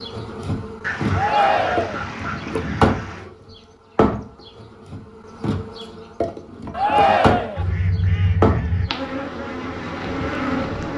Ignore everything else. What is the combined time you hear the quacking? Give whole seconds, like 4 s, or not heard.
4 s.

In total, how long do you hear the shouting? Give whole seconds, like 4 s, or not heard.
2 s.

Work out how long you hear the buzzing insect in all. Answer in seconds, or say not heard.
11 s.